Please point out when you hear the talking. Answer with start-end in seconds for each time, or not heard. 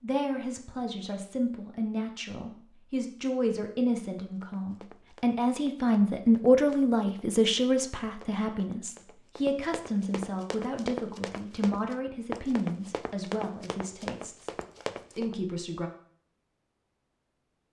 0.0-14.5, 15.1-15.9.